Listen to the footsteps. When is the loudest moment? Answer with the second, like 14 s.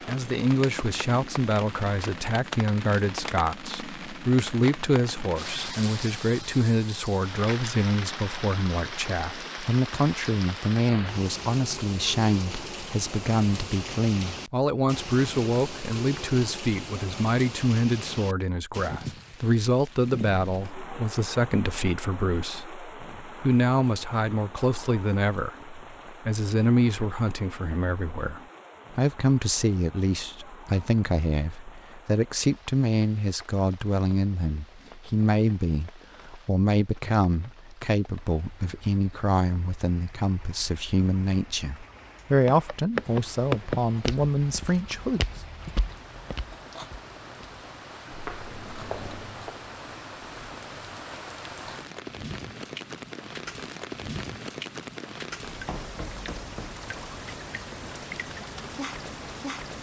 44 s.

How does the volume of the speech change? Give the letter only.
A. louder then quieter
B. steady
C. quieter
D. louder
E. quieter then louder
B.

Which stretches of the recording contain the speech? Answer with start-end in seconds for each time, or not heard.
0.1-45.2.